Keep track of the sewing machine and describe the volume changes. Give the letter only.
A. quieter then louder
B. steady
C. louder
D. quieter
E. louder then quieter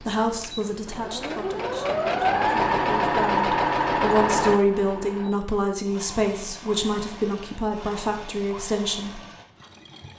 E.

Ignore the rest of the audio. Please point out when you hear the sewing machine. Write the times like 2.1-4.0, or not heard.
0.0-10.1.